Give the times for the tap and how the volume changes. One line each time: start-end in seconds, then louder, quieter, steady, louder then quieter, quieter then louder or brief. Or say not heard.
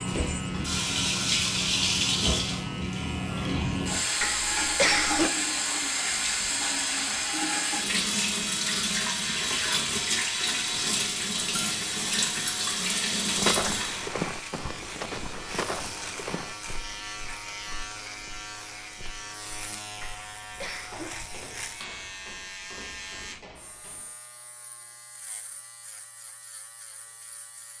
0.0-14.1 steady.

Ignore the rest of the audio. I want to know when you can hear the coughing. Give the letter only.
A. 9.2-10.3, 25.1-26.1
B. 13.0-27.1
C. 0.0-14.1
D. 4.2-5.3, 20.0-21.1
D.